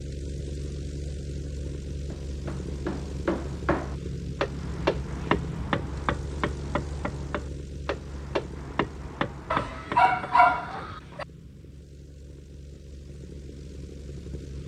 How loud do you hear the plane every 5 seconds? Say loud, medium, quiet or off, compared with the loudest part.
loud, loud, medium.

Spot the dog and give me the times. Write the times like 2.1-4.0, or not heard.
9.5-11.2.